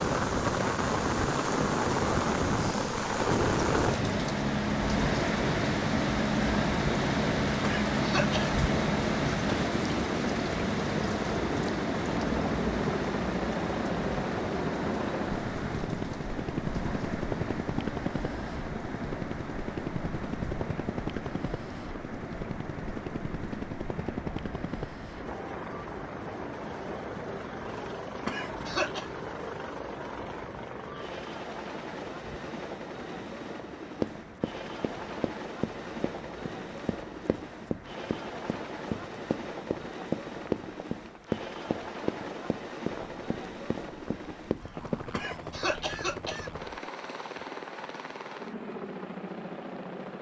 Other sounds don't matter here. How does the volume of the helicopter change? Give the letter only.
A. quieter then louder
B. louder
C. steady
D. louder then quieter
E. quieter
E.